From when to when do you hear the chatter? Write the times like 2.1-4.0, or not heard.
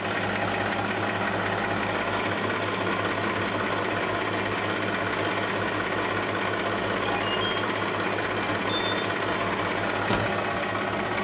not heard.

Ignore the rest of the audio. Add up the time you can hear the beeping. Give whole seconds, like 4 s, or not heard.
3 s.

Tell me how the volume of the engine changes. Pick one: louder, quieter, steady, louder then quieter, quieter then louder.
steady.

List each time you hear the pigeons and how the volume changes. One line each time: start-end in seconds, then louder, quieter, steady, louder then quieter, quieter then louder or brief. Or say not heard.
not heard.